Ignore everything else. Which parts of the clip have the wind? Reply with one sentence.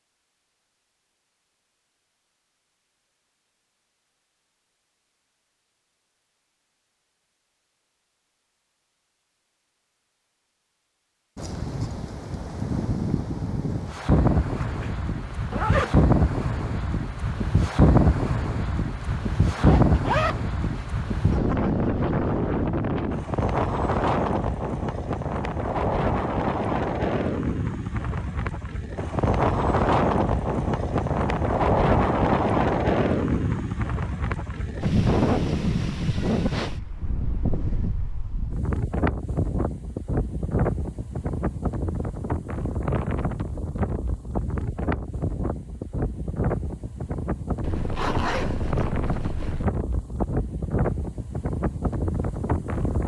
The wind can be heard from 11.3 to 53.0 s.